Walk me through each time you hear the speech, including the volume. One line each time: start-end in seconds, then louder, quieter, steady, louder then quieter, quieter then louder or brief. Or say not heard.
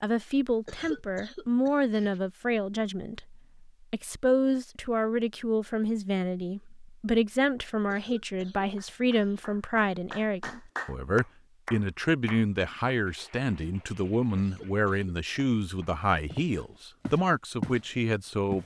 0.0-18.6 steady.